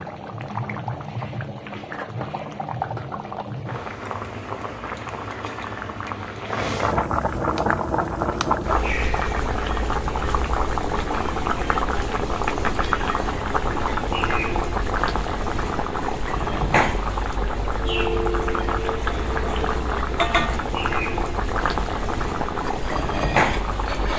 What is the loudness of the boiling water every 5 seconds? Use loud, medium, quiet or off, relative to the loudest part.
medium, loud, loud, loud, loud.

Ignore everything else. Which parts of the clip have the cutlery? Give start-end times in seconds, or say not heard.
22.6-24.1.